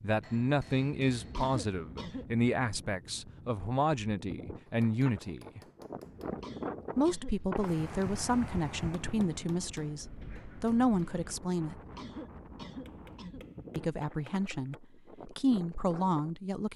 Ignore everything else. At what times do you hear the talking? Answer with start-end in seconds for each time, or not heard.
0.0-5.6, 7.0-11.8, 13.8-16.7.